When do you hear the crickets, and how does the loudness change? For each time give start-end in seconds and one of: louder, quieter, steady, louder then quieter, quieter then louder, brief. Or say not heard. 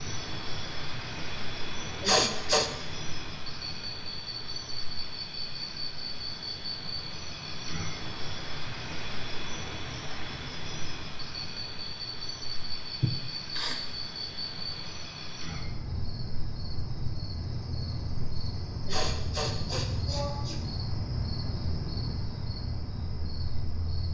0.0-24.0 steady.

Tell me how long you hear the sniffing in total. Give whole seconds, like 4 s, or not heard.
3 s.